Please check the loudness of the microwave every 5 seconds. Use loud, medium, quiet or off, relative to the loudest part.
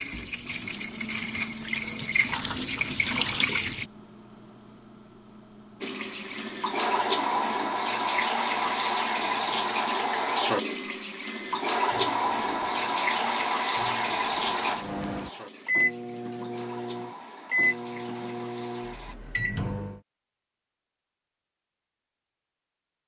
quiet, quiet, quiet, loud, off.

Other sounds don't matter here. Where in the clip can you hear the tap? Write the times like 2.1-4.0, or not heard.
0.0-3.9, 5.8-19.1.